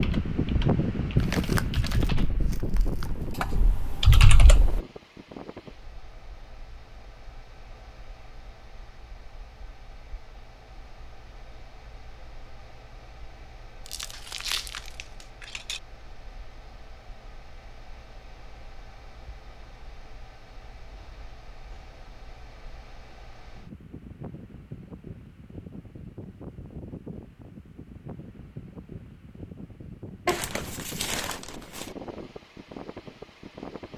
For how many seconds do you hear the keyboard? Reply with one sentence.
The keyboard can be heard for 5 seconds in total.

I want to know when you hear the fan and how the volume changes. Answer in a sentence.
You can hear the fan from 0.0 to 33.9 s, getting quieter then louder.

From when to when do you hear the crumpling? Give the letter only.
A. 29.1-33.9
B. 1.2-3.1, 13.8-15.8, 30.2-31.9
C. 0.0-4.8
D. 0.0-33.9
B.